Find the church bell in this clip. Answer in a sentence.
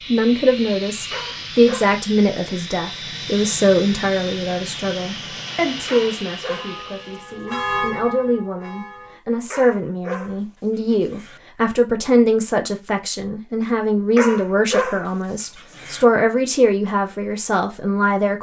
The church bell can be heard from 6.5 to 9.2 s.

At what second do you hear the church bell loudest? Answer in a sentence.
The loudest moment of the church bell is at 8 seconds.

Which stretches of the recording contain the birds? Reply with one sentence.
The birds can't be heard in this clip.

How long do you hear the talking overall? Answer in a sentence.
You can hear the talking for 18 seconds altogether.